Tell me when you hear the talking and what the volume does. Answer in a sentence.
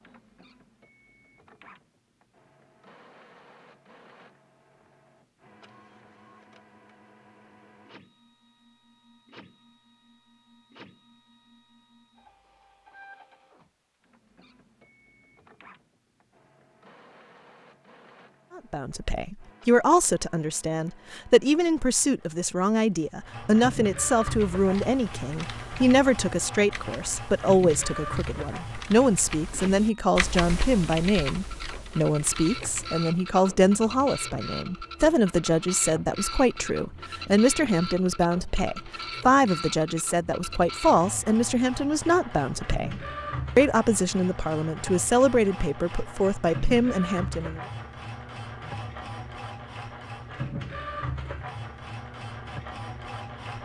You can hear the talking from 18.6 to 47.6 s, at a steady volume.